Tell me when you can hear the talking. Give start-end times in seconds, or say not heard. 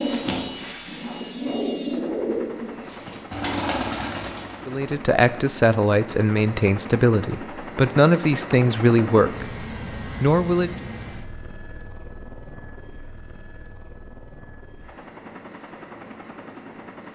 4.7-10.7.